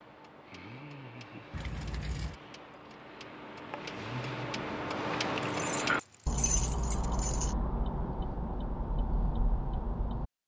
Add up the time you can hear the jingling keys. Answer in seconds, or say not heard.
3 s.